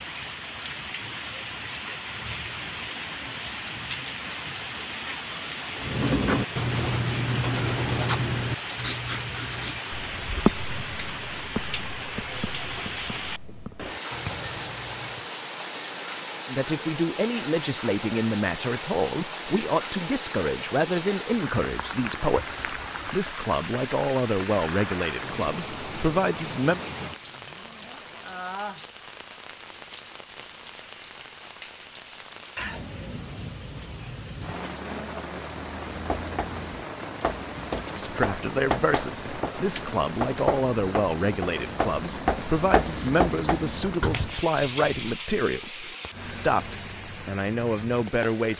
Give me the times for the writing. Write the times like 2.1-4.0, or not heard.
5.8-15.3, 35.9-45.2.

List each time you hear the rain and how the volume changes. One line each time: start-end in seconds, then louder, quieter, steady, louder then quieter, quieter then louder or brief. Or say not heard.
0.0-48.5 steady.